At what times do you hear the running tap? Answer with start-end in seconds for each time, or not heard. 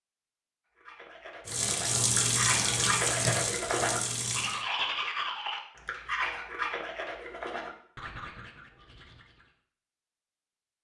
1.4-4.7.